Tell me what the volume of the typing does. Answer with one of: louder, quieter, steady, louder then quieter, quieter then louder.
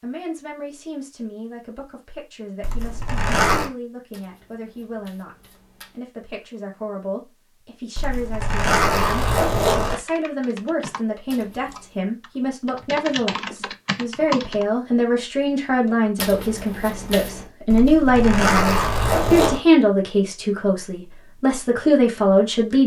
quieter then louder.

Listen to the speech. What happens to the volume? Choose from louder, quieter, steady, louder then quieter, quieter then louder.
louder.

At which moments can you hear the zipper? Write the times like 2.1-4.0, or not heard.
2.6-3.7, 8.0-9.9, 17.7-19.6.